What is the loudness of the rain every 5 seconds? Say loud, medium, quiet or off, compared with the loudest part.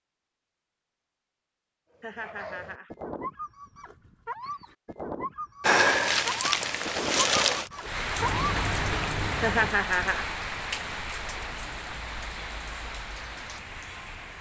off, loud, medium.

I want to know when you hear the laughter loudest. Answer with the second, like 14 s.
10 s.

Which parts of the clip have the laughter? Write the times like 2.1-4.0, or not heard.
2.0-2.9, 9.4-10.3.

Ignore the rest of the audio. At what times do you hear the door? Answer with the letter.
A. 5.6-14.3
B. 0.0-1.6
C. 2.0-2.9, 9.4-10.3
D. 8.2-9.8
D.